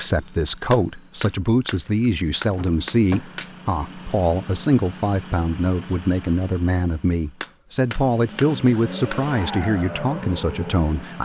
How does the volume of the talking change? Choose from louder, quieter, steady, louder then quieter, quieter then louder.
steady.